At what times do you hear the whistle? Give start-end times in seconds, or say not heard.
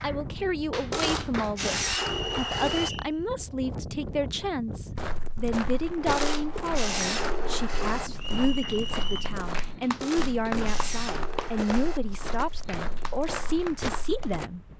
2.1-3.1, 8.2-9.3.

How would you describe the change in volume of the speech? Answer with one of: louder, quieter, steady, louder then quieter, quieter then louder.
steady.